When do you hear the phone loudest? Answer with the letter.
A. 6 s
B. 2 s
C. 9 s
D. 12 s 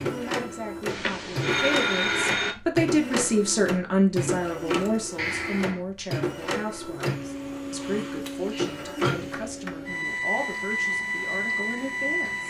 B.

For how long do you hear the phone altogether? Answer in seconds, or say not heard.
3 s.